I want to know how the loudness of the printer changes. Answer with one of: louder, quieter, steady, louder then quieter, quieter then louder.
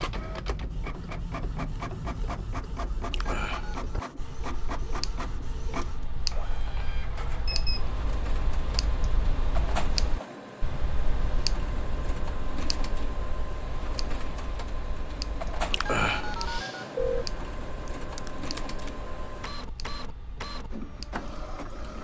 steady.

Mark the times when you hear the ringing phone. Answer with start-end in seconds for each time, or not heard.
3.1-3.9, 15.7-17.2.